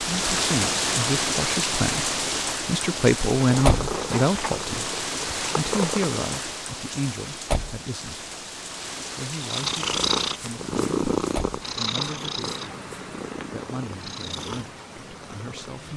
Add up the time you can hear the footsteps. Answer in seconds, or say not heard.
not heard.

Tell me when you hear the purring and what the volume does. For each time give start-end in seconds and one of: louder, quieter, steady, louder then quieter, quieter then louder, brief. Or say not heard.
3.4-6.2 brief
9.4-15.8 quieter.